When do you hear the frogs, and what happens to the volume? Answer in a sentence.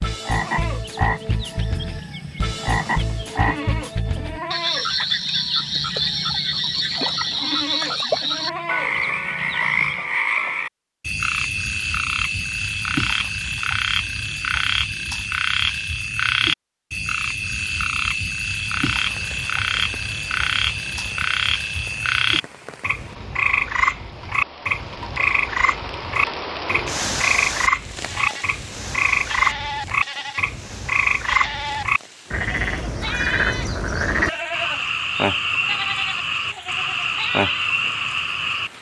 You can hear the frogs from 0.0 to 38.7 s, at a steady volume.